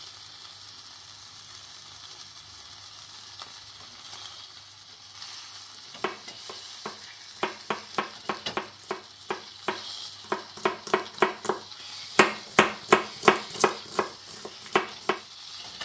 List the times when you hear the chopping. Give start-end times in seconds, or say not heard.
6.0-15.2.